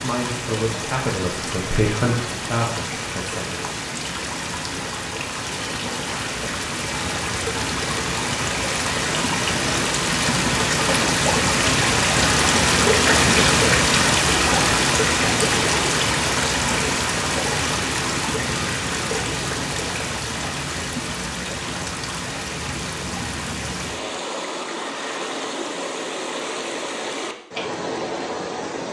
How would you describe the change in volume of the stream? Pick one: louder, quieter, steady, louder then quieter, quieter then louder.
louder then quieter.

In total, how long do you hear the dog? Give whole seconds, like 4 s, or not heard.
not heard.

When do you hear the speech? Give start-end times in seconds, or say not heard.
0.0-3.8.